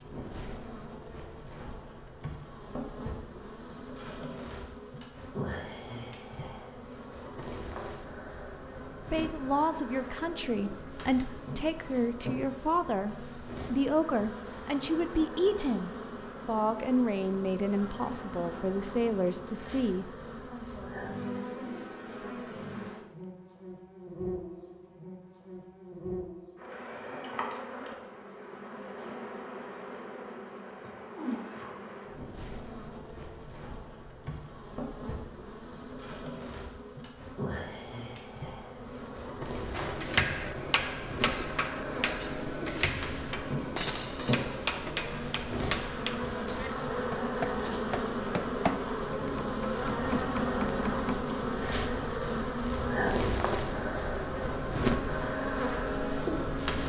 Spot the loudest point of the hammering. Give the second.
40 s.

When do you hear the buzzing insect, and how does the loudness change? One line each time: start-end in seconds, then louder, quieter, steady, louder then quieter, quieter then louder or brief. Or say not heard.
0.0-56.8 louder.